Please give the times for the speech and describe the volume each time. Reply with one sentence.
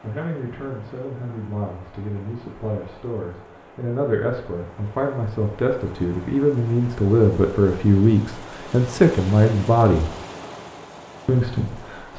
You can hear the speech from 0.0 to 10.1 s, getting louder; and briefly from 11.2 to 12.1 s.